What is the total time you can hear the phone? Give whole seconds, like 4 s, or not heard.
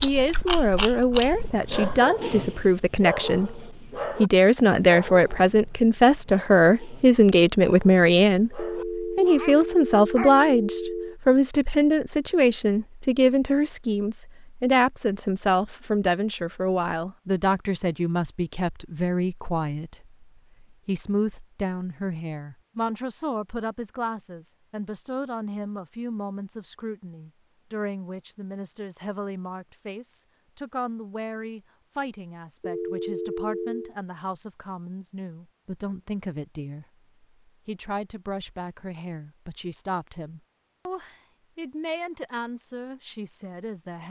4 s.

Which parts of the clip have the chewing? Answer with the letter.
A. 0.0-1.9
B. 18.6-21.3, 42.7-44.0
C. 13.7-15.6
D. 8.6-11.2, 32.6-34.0
A.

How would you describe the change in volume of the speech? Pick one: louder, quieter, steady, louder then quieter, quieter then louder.
quieter.